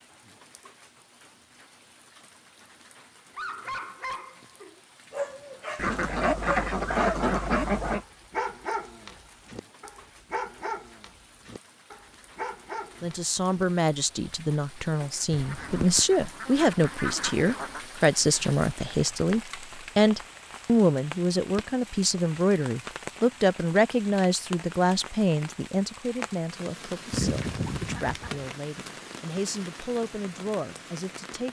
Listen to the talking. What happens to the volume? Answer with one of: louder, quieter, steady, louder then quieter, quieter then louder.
quieter.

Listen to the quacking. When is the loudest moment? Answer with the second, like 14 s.
7 s.